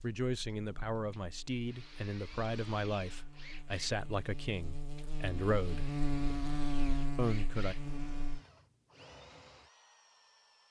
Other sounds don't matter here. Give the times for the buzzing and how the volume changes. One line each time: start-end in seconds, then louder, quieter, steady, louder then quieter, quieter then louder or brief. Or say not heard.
0.2-8.4 louder.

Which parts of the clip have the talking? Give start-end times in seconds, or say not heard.
0.0-5.9, 7.2-7.8.